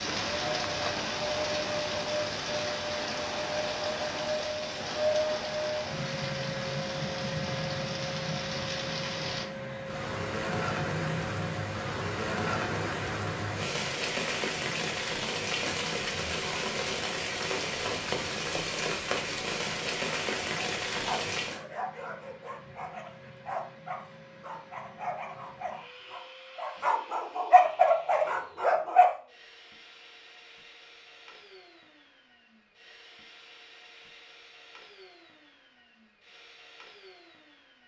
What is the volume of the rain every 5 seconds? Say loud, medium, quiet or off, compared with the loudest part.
loud, medium, loud, loud, loud, off, off, off.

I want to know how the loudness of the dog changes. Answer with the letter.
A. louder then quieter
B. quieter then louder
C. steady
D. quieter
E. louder
E.